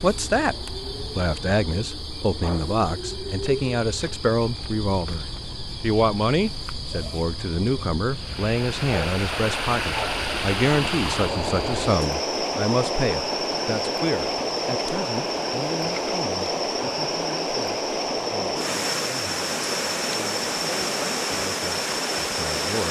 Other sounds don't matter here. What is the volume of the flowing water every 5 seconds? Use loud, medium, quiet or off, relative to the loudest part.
off, loud, loud, loud, loud.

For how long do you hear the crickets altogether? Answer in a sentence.
You can hear the crickets for 23 seconds altogether.